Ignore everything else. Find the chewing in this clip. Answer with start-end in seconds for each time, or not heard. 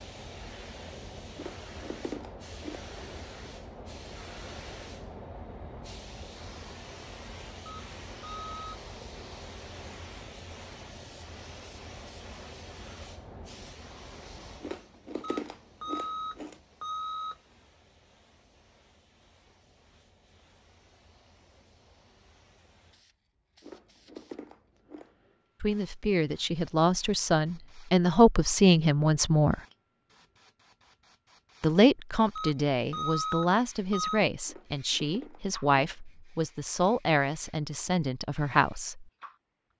1.4-2.9, 14.6-16.6, 23.6-25.1, 34.5-36.0.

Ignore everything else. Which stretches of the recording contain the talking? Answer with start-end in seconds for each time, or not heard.
25.6-29.6, 31.6-39.0.